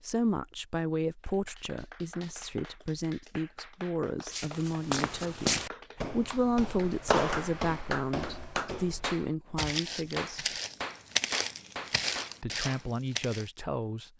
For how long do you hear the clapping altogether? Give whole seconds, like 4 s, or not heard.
12 s.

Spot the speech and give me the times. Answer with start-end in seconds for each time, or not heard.
0.0-10.4, 12.4-14.1.